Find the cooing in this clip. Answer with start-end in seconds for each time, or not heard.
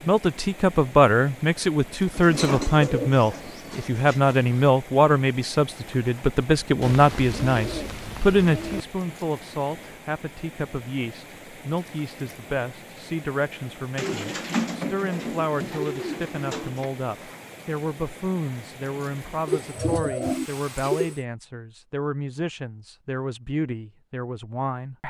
2.1-4.4, 6.8-8.8, 13.9-16.9, 19.4-21.2.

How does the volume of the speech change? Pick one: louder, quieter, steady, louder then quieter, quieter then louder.
quieter.